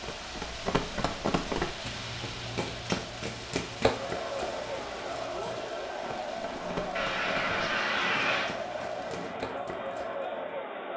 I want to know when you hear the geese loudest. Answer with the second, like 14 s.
8 s.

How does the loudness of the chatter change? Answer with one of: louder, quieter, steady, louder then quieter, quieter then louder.
louder.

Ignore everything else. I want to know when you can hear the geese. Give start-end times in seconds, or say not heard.
7.0-8.6.